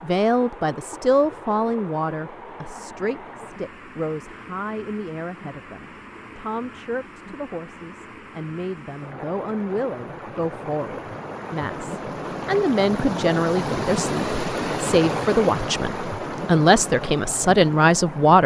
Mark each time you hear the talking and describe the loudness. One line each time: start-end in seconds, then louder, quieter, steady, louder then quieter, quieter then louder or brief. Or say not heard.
0.0-18.4 quieter then louder.